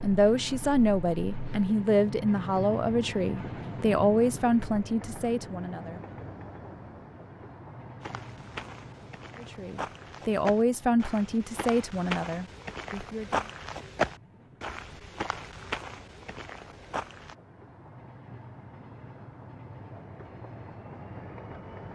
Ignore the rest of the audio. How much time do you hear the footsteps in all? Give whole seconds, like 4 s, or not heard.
9 s.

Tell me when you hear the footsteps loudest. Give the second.
14 s.